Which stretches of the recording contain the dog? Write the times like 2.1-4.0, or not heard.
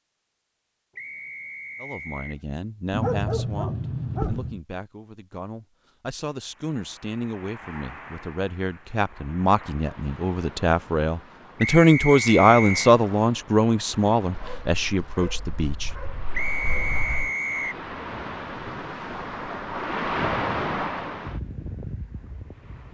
2.9-4.6, 14.3-17.3.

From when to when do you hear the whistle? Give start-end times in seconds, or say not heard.
0.9-2.4, 11.6-12.9, 16.3-17.8.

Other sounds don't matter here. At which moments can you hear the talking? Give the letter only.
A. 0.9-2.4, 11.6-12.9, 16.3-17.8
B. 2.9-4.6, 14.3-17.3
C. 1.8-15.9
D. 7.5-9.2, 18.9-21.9
C.